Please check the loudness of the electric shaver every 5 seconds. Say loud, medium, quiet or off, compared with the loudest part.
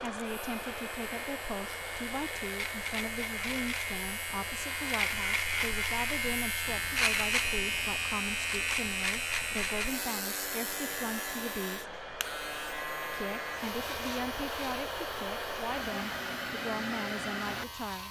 medium, loud, medium, quiet.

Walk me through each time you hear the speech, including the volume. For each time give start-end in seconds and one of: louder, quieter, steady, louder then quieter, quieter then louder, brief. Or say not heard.
0.0-11.9 steady
13.1-18.0 steady.